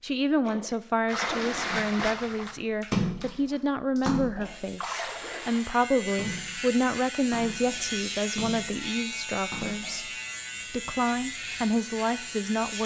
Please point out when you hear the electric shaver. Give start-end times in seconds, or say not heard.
4.4-12.8.